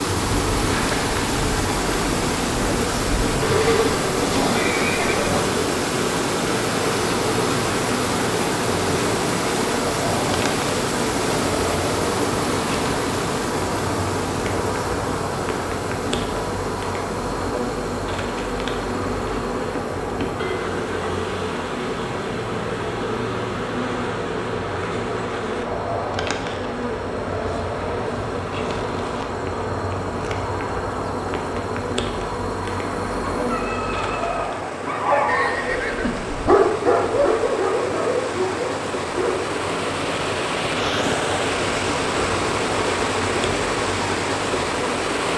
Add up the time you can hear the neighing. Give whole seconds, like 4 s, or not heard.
3 s.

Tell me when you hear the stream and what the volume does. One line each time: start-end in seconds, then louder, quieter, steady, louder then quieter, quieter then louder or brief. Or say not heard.
0.0-45.3 quieter then louder.